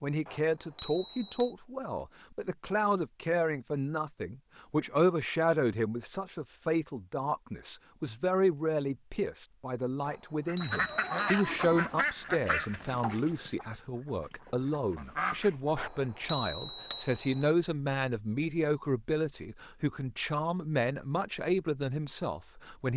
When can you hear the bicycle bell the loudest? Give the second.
16 s.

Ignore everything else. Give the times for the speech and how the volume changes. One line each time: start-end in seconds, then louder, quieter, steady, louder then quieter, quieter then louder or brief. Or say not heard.
0.0-22.9 steady.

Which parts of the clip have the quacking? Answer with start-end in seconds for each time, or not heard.
10.4-15.6.